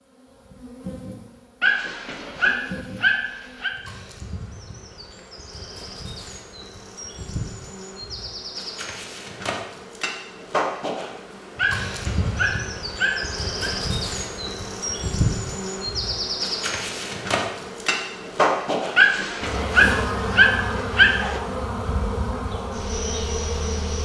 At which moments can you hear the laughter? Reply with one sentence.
You can't hear the laughter here.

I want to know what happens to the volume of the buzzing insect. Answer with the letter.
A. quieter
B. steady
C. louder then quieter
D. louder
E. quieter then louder
D.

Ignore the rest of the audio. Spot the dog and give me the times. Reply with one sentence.
The dog can be heard from 1.6 to 3.7 s, from 11.6 to 13.7 s and from 18.9 to 21.4 s.